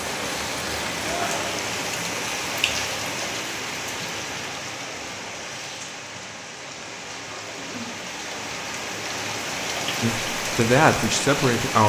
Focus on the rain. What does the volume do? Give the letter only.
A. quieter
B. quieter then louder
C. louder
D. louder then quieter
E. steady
B.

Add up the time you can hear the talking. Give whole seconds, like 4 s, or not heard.
2 s.